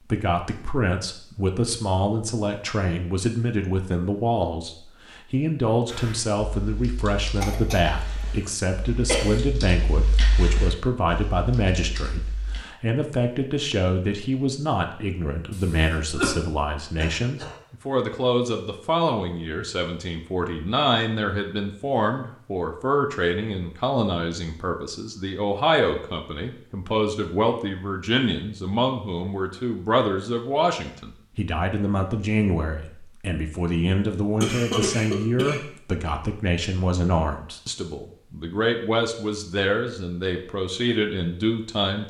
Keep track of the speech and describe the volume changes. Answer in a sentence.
The loudness of the speech stays about the same.